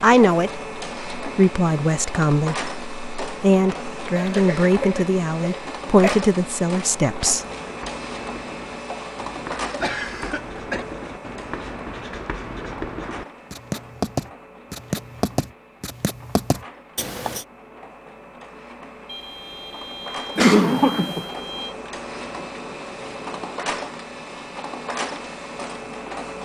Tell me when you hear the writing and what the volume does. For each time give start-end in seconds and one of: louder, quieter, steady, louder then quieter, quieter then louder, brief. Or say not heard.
7.5-17.4 louder.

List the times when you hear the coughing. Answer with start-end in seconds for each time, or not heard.
4.2-6.2, 9.3-10.8, 20.4-21.2.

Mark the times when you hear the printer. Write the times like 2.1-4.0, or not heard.
0.0-26.4.